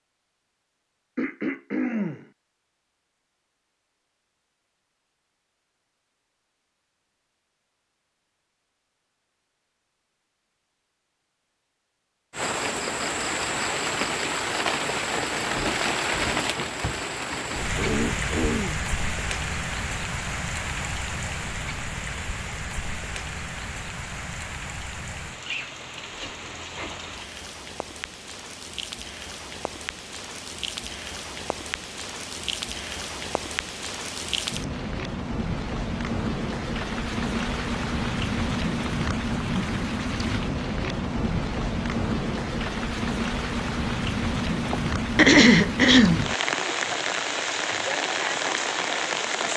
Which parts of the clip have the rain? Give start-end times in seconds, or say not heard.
12.3-49.5.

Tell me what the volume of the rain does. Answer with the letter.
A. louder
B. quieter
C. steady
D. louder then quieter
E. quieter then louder
E.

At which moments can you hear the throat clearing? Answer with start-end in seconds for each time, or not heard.
1.1-2.3, 17.8-18.8, 44.6-46.3.